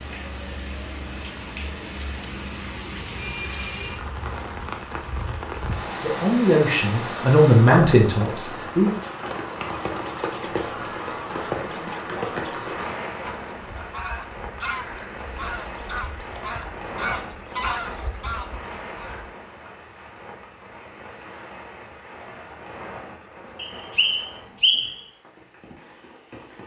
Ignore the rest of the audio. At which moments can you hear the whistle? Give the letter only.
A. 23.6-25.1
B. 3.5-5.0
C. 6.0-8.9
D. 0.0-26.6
A.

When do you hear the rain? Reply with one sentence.
The rain can be heard from 0.0 to 26.6 s.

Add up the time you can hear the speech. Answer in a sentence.
The speech can be heard for 3 seconds in total.